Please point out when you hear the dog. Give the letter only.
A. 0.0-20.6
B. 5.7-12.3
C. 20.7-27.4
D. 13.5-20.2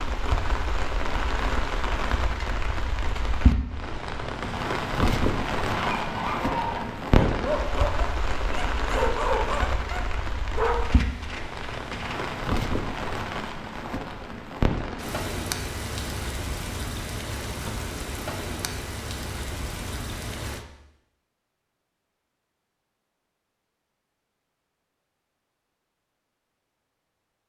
B.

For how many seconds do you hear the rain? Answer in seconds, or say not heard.
21 s.